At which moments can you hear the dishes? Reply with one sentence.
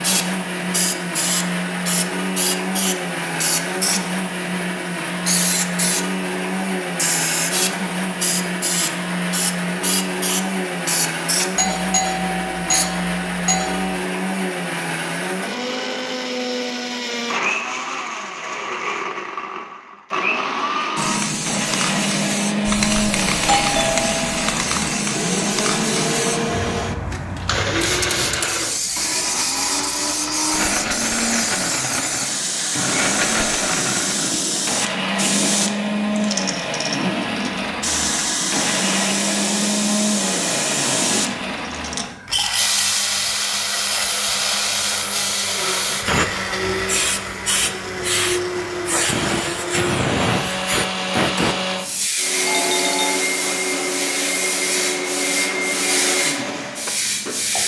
The dishes can't be heard in this clip.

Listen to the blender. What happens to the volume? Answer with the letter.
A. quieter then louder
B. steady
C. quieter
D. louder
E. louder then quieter
B.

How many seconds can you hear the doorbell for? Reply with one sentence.
The doorbell can be heard for 4 seconds in total.